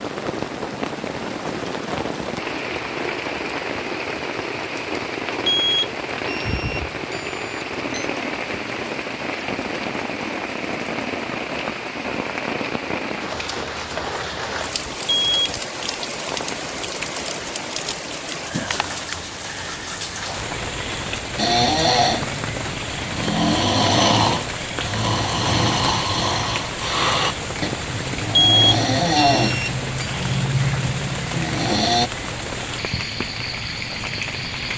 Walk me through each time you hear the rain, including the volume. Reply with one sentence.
The rain can be heard from 0.0 to 34.7 s, at a steady volume.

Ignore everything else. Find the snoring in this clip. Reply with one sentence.
The snoring can be heard from 21.4 to 32.1 s.